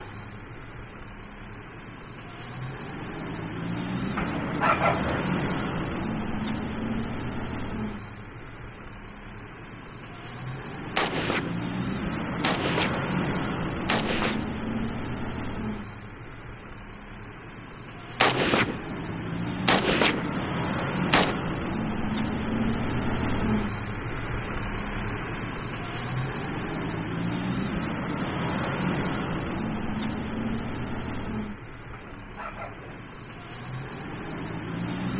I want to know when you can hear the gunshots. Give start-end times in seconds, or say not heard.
10.9-14.5, 18.2-21.4.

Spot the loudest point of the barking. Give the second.
5 s.